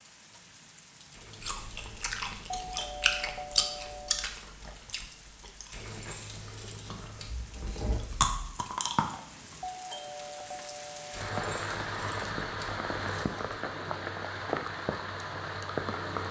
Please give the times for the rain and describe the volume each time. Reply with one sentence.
The rain can be heard from 0.0 to 16.2 s, getting louder.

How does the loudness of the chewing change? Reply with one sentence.
The loudness of the chewing goes down, then up.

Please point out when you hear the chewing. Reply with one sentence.
You can hear the chewing from 1.4 to 9.6 s.